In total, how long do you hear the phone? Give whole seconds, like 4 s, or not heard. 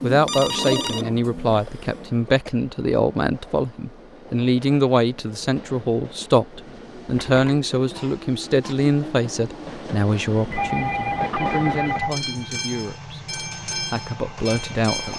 4 s.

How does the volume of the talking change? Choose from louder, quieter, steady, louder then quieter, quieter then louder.
quieter.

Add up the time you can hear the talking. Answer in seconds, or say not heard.
15 s.